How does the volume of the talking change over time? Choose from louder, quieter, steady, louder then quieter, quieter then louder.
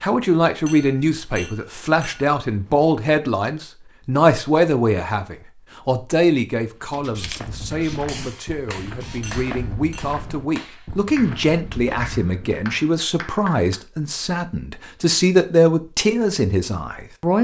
quieter then louder.